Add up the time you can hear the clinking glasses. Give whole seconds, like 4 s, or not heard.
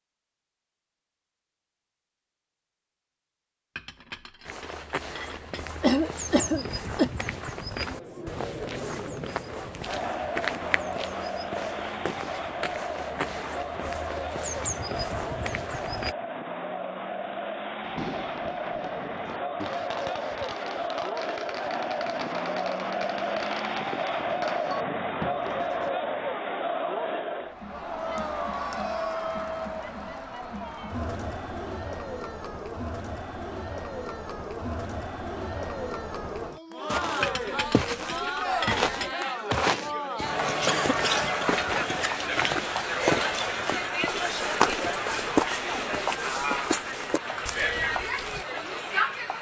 4 s.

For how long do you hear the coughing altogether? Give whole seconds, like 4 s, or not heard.
2 s.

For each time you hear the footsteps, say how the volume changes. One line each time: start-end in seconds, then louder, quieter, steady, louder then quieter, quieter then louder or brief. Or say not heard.
4.5-16.1 steady
36.9-48.5 quieter.